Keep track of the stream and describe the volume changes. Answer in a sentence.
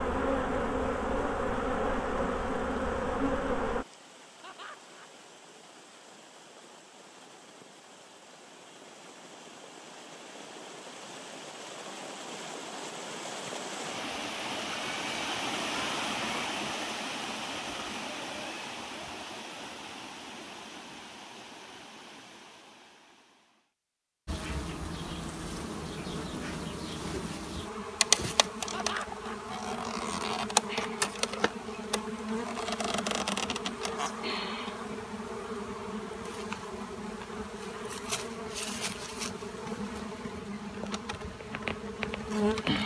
The volume of the stream goes up, then down.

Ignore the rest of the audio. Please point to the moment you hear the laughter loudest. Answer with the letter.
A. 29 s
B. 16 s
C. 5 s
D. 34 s
A.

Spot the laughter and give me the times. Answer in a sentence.
You can hear the laughter from 4.4 to 5.1 s and from 28.7 to 29.4 s.